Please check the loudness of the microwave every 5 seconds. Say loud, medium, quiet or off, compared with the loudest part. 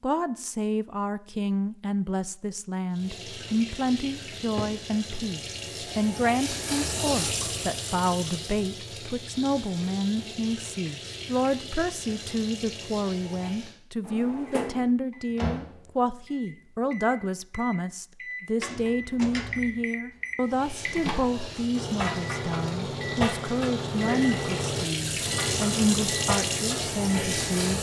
off, off, off, medium, loud, loud.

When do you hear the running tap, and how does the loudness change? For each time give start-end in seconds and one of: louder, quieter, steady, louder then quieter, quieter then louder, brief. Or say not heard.
2.9-13.8 louder then quieter
20.4-27.7 louder.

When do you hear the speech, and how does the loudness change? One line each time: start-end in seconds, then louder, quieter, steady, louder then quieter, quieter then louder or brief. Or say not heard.
0.0-27.7 steady.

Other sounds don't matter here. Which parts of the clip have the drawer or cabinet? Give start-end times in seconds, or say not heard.
4.3-4.8, 14.1-14.9, 18.6-19.9.